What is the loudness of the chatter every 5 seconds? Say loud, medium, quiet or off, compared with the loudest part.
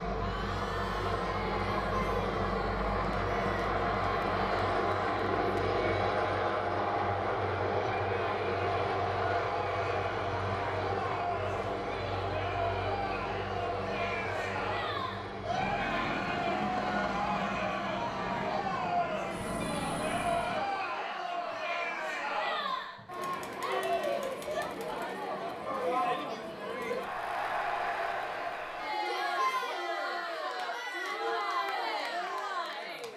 medium, medium, loud, loud, loud, loud, loud.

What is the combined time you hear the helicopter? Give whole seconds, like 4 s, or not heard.
21 s.